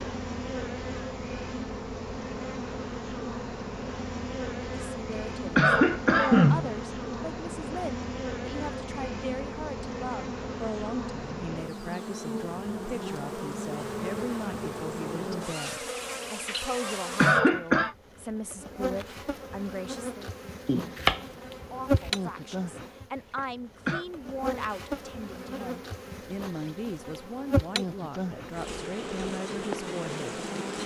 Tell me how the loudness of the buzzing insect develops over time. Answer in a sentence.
The volume of the buzzing insect stays about the same.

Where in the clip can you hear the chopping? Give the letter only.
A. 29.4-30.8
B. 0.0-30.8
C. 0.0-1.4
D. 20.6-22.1
D.